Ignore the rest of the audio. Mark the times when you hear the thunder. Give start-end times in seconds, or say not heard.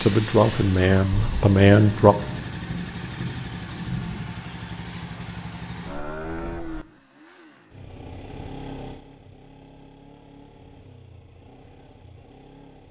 1.1-4.3.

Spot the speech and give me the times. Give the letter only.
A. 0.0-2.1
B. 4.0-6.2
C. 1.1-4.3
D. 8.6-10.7
A.